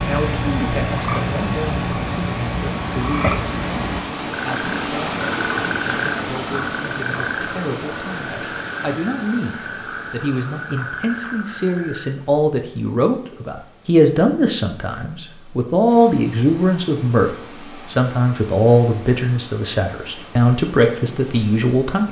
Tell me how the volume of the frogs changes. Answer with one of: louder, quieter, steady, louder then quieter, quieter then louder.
quieter.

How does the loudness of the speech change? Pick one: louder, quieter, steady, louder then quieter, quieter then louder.
louder.